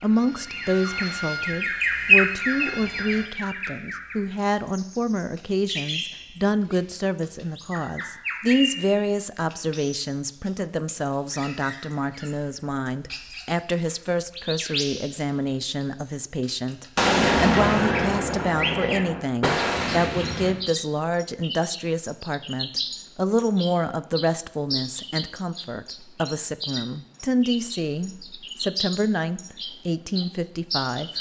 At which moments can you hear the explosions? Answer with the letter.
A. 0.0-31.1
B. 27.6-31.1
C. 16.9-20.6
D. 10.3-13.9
C.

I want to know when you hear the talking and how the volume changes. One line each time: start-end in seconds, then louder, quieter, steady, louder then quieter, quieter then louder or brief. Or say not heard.
0.0-31.1 steady.